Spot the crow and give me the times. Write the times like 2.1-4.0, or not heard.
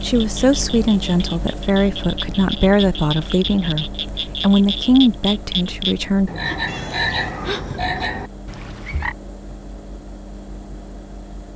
not heard.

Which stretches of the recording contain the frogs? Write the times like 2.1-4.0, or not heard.
0.0-9.2.